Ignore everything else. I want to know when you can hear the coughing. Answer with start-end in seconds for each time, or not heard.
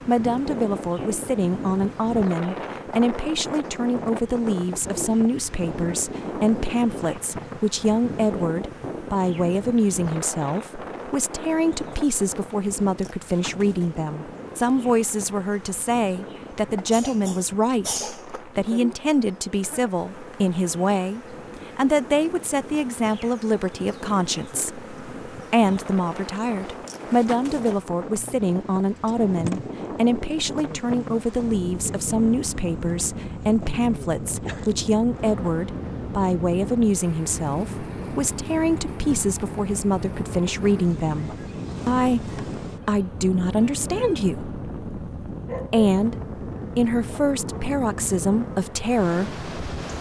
16.9-18.4.